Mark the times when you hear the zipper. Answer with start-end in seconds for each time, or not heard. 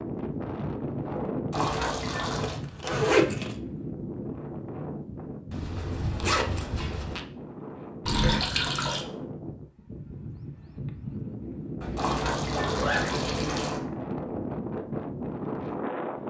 2.4-3.5, 5.5-7.2, 11.8-13.1.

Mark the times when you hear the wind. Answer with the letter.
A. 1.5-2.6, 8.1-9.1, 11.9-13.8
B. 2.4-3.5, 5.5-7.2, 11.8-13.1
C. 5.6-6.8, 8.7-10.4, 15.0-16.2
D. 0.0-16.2
D.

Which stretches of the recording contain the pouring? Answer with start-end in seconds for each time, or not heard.
1.5-2.6, 8.1-9.1, 11.9-13.8.